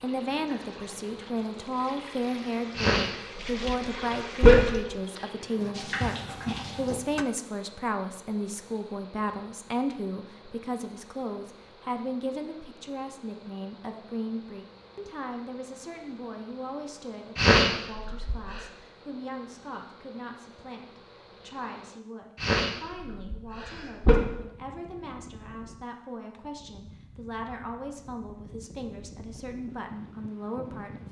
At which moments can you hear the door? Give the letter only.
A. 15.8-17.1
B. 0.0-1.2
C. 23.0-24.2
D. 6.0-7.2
D.